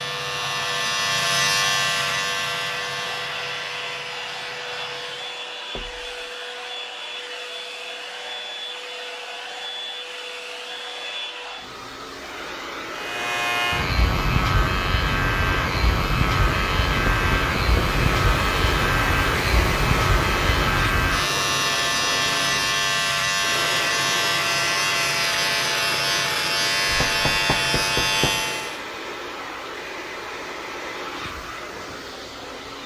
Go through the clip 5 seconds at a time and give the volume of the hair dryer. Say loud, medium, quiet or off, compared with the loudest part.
medium, medium, medium, loud, loud, medium, medium.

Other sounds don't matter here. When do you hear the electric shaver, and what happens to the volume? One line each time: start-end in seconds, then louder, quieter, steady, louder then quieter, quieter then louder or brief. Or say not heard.
0.0-5.5 quieter
12.9-28.8 steady.